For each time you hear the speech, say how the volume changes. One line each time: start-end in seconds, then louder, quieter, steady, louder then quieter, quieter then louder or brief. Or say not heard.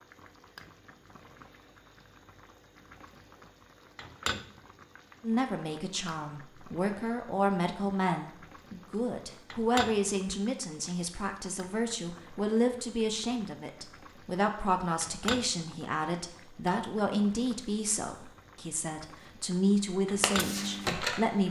5.2-21.4 steady.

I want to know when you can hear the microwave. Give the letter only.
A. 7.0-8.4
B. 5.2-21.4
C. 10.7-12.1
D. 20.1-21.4
D.